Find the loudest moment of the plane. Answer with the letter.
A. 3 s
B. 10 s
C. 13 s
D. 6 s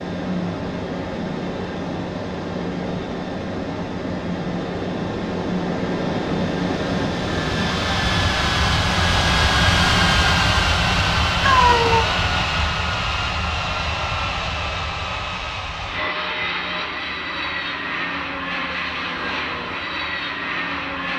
B.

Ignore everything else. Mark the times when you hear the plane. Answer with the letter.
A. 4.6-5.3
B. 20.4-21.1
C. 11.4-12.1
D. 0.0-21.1
D.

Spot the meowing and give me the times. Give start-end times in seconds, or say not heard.
11.4-12.1.